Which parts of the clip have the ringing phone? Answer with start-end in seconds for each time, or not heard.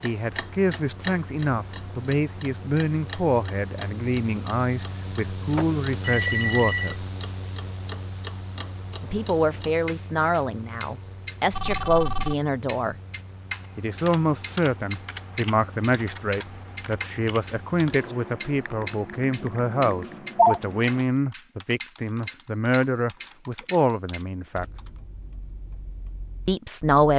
5.5-7.0, 11.5-12.3, 19.4-20.6.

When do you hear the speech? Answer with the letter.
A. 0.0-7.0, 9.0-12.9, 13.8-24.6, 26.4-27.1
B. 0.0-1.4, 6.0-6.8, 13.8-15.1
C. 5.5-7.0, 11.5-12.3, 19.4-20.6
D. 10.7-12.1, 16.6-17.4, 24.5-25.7
A.